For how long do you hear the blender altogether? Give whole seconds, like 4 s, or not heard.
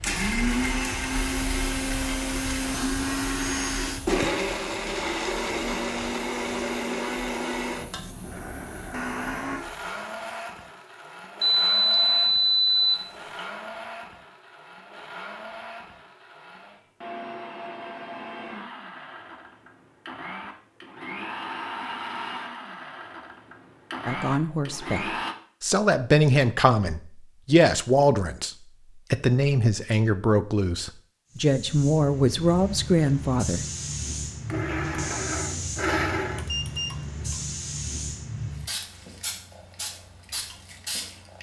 27 s.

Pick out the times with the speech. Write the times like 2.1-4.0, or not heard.
24.1-28.5, 29.1-33.6.